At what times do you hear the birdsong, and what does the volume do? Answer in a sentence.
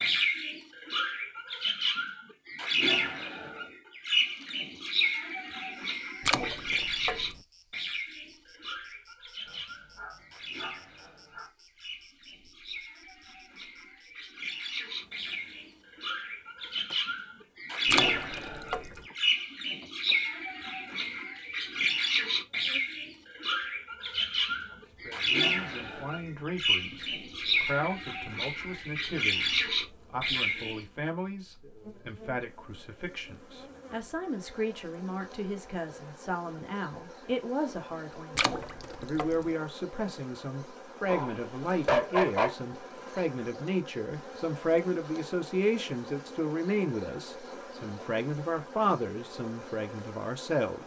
The birdsong can be heard from 0.0 to 30.9 s, getting quieter then louder.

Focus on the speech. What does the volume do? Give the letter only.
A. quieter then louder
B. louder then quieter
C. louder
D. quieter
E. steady
C.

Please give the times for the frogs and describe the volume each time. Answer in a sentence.
You can't hear the frogs here.